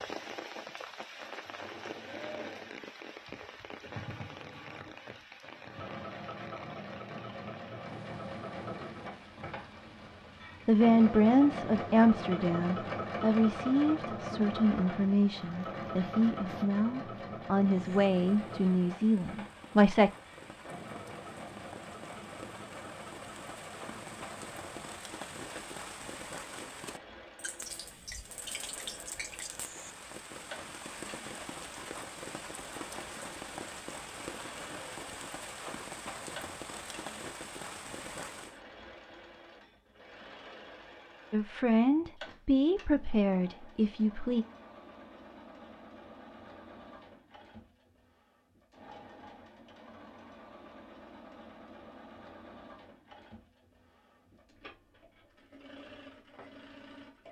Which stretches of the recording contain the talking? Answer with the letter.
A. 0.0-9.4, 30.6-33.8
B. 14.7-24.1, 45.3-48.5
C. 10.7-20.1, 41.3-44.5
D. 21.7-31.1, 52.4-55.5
C.